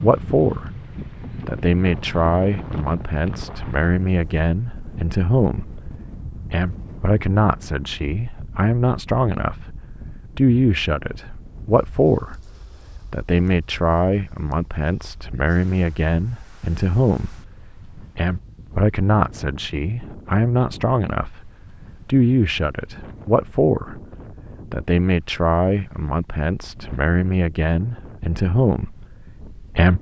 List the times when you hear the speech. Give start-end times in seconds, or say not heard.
0.0-0.7, 1.4-12.4, 13.1-24.0, 24.7-29.9.